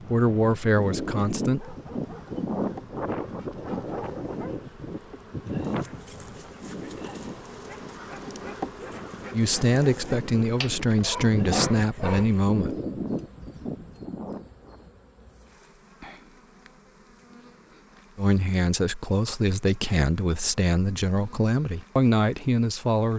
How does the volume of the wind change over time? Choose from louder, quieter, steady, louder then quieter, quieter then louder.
quieter then louder.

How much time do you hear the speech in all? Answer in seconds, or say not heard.
10 s.